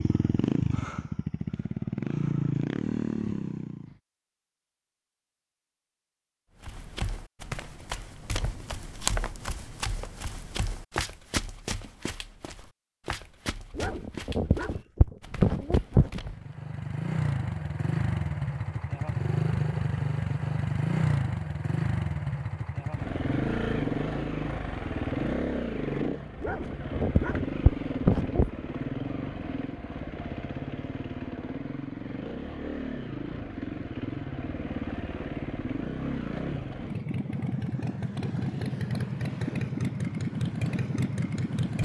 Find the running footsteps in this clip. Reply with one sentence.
The running footsteps can be heard from 6.5 to 16.6 s.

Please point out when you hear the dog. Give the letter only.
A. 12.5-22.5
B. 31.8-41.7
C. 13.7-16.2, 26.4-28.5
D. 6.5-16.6
C.